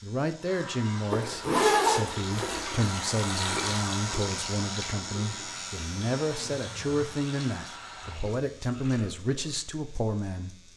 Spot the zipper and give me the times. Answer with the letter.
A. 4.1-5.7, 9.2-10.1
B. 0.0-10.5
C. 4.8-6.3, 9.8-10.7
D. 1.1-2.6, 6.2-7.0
D.